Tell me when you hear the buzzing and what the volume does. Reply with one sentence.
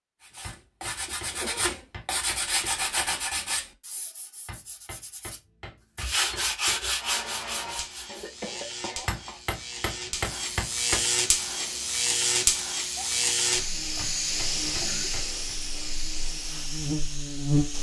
The buzzing can be heard from 7.0 to 17.7 s, getting louder then quieter.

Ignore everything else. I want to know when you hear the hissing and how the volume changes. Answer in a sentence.
You can hear the hissing from 11.3 to 17.7 s, getting louder then quieter.